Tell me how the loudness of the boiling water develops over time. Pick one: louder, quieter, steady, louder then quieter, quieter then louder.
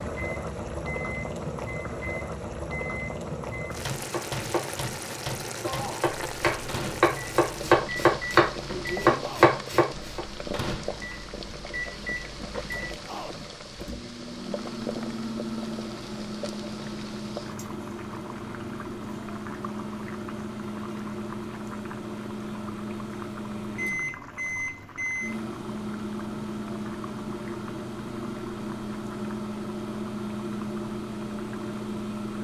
quieter.